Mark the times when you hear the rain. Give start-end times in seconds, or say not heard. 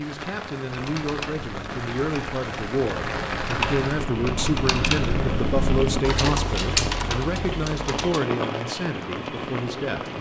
0.0-10.1.